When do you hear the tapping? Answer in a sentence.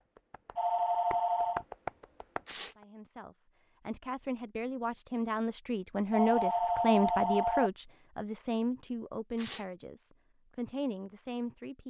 The tapping can be heard from 0.0 to 2.9 s.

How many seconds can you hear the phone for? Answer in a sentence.
The phone can be heard for 3 seconds in total.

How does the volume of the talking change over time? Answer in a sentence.
The loudness of the talking goes up, then down.